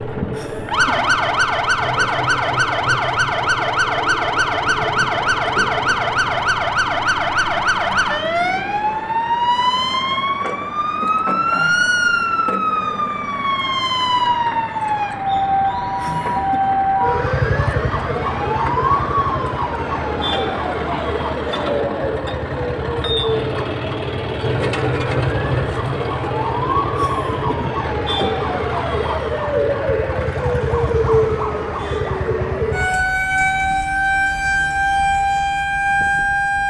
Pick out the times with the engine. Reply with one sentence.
The engine can be heard from 0.0 to 33.2 s.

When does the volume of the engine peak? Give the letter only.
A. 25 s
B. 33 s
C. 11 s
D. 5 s
A.